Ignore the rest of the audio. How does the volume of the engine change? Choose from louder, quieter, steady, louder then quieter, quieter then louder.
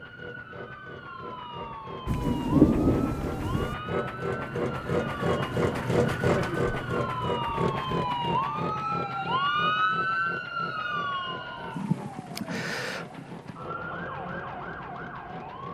louder then quieter.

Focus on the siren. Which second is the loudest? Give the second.
10 s.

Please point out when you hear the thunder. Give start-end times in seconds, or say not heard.
2.0-3.8.